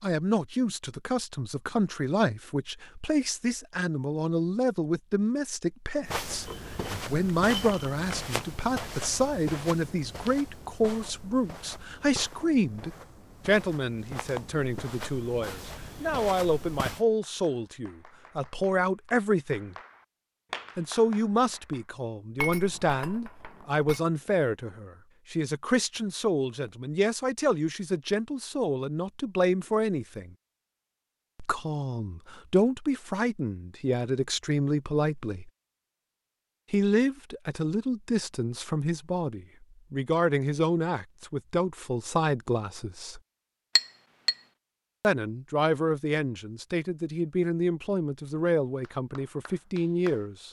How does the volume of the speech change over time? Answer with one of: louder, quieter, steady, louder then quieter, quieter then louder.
steady.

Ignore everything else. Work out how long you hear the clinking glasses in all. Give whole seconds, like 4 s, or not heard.
4 s.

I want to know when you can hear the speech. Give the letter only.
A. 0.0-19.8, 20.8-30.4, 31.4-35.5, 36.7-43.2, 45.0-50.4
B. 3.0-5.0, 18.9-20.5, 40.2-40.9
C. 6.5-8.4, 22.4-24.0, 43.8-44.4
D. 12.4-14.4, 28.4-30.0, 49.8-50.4
A.